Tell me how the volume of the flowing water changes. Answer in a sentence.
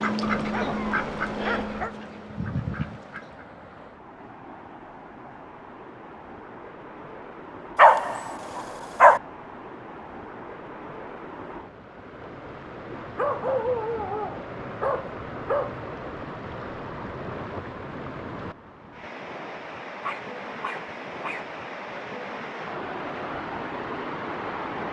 The volume of the flowing water goes up.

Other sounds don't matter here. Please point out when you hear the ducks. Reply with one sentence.
You can hear the ducks from 0.0 to 3.5 s.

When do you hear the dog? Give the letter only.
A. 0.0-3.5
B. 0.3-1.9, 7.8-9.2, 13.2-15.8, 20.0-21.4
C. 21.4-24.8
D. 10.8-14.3
B.